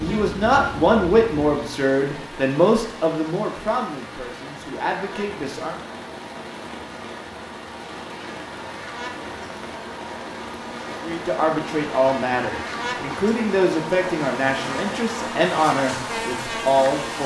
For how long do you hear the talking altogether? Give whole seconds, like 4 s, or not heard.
12 s.